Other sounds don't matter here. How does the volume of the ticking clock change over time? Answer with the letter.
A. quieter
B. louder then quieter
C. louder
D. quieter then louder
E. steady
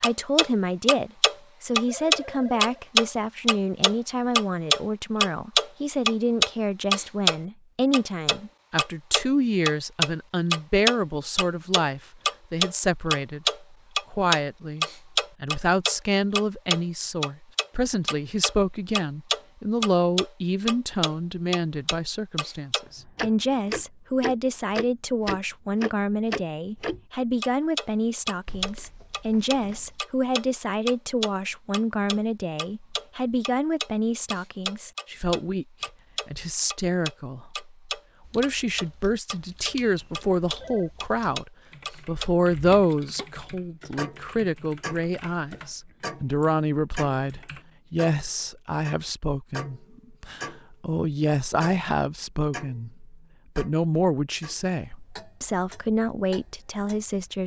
A.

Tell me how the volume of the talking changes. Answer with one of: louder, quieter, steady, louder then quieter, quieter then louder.
steady.